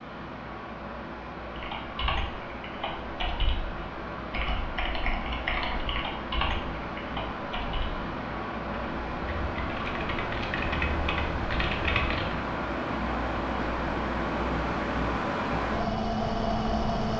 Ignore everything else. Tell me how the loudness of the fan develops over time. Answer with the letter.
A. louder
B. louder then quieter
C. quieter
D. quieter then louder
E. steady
A.